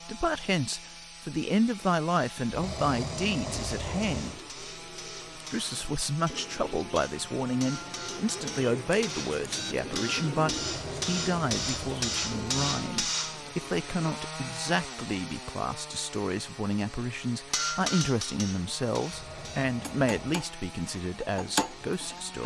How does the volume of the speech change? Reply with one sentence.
The volume of the speech stays about the same.